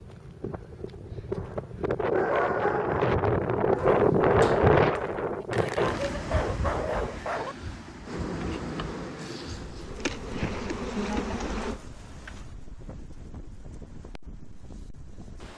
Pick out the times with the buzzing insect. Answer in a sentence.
The buzzing insect can be heard from 8.1 to 11.8 s.